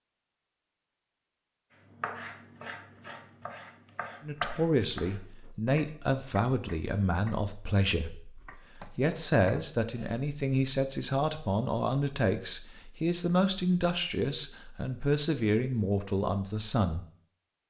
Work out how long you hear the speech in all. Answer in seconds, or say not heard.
13 s.